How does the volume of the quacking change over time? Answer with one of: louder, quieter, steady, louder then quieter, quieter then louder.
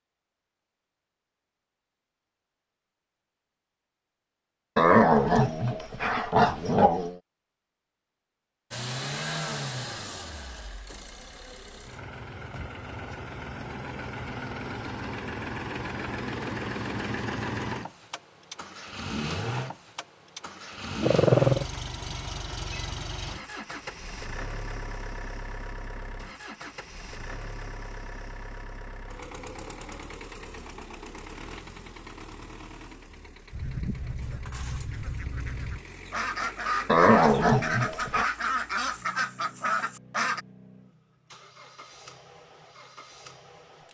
louder.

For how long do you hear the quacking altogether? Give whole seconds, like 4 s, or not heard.
7 s.